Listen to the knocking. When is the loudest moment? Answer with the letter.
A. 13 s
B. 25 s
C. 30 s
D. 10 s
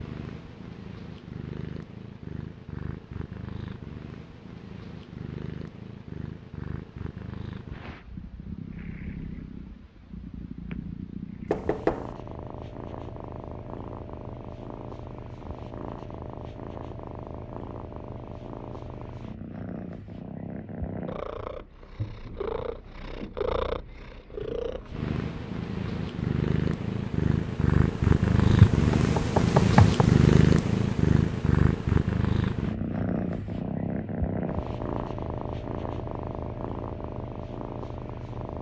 C.